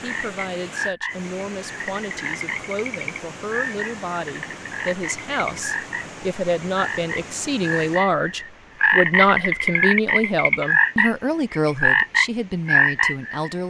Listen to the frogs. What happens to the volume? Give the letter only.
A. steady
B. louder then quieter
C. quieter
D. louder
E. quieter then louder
D.